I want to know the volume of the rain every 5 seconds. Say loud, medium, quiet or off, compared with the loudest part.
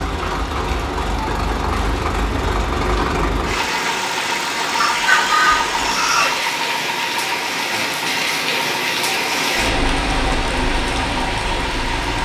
medium, loud, loud.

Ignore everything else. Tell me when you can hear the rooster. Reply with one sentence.
The rooster can be heard from 4.8 to 6.3 s.